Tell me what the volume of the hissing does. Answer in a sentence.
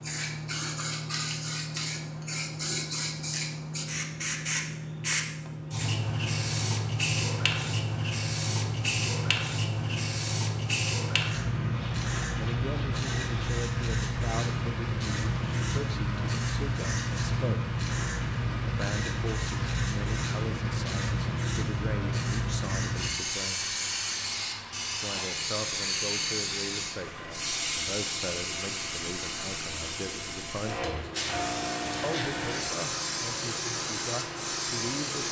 The loudness of the hissing stays about the same.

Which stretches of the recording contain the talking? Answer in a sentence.
The talking can be heard from 12.3 to 17.8 s, from 18.6 to 23.8 s, from 25.0 to 31.1 s and from 32.0 to 35.2 s.